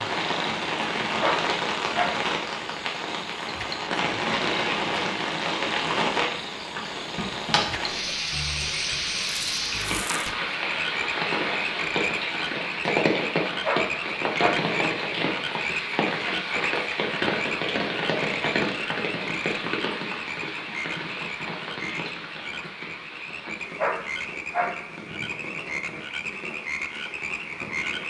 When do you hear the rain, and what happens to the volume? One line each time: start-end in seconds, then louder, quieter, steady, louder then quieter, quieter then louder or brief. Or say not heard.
0.0-28.0 quieter.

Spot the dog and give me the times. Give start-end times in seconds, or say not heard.
1.2-2.3, 13.6-14.7, 23.8-24.9.